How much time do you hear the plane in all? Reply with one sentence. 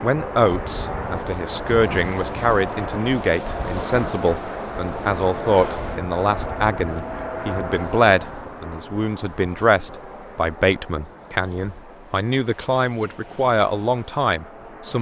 The plane can be heard for 15 seconds in total.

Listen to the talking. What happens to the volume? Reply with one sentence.
The loudness of the talking stays about the same.